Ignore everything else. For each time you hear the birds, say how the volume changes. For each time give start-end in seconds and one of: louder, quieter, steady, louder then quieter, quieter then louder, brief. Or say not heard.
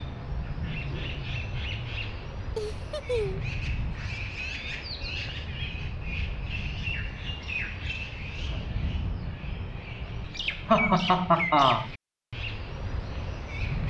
0.0-13.8 steady.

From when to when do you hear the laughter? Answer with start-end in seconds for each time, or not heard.
2.5-3.5, 10.7-11.9.